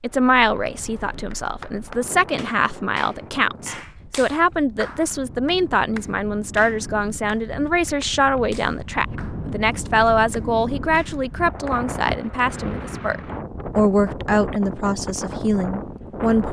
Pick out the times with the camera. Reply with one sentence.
The camera can't be heard in this clip.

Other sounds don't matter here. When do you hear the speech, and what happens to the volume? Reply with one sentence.
You can hear the speech from 0.0 to 16.4 s, at a steady volume.